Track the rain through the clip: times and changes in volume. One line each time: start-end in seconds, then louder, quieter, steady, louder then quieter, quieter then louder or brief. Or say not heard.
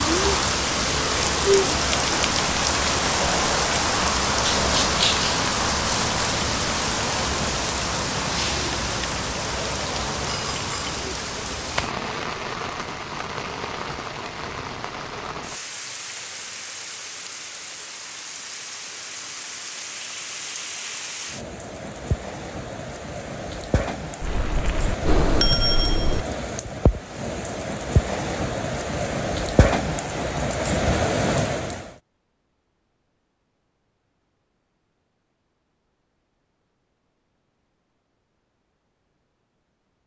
0.0-31.9 quieter then louder.